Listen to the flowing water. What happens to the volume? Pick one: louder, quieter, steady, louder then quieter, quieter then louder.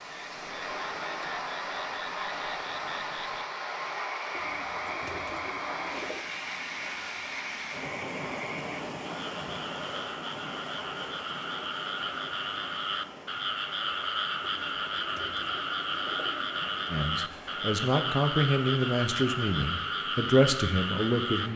quieter.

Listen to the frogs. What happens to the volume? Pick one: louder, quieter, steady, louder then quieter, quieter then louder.
louder.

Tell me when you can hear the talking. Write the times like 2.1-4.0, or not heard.
16.9-21.5.